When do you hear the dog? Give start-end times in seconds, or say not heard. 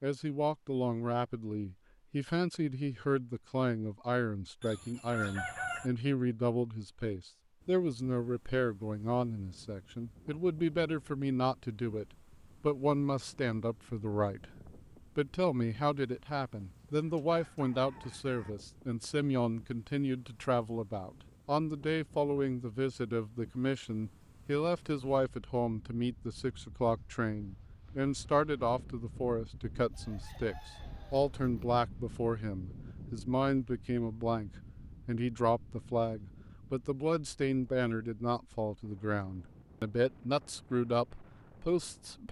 not heard.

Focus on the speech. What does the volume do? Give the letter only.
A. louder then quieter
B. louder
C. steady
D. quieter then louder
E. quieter
C.